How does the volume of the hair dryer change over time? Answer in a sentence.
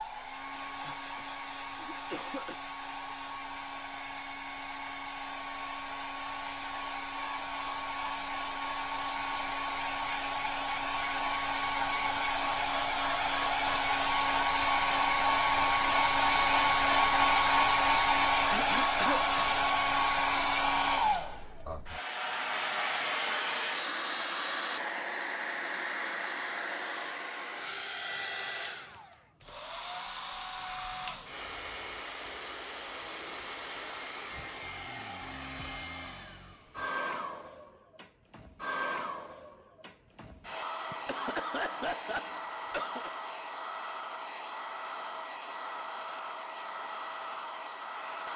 The loudness of the hair dryer goes up, then down.